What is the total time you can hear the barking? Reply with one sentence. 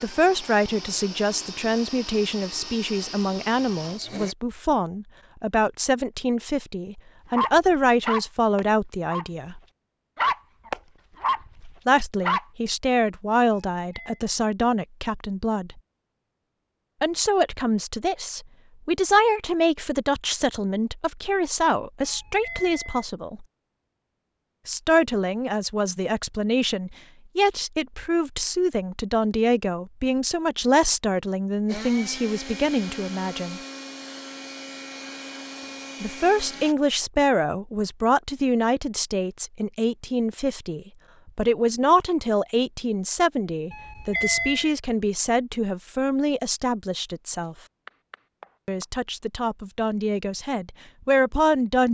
The barking can be heard for 5 seconds in total.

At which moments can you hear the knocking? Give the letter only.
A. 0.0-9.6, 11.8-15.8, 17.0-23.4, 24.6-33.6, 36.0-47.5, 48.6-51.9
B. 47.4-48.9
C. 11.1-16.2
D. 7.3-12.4
B.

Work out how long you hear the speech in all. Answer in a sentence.
You can hear the speech for 44 seconds altogether.